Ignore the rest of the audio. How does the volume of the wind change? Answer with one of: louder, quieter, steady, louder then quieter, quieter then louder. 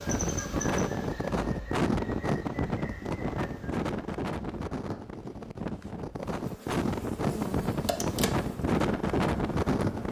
quieter then louder.